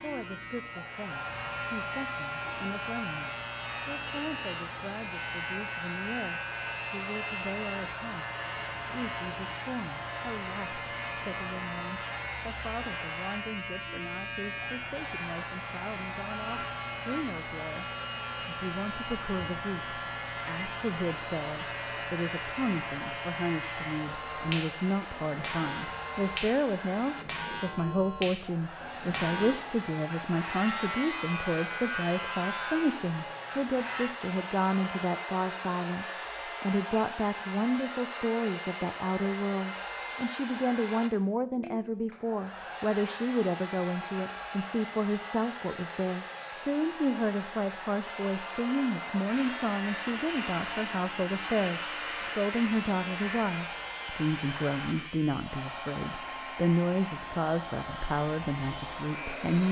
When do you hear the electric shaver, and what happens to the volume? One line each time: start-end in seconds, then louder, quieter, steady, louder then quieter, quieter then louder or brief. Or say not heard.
0.0-34.1 steady
49.2-59.6 quieter.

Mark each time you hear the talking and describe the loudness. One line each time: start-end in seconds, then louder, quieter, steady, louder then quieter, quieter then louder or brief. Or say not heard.
0.0-17.9 steady
18.4-59.6 steady.